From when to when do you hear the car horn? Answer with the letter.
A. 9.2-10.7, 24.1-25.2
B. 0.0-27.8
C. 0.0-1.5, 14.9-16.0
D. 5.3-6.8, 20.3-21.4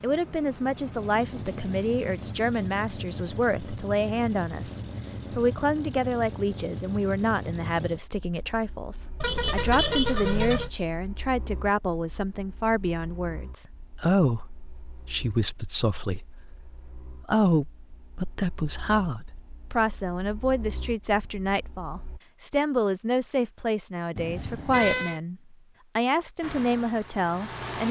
A.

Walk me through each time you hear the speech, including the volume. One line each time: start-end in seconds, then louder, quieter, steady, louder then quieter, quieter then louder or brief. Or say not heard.
0.0-27.8 steady.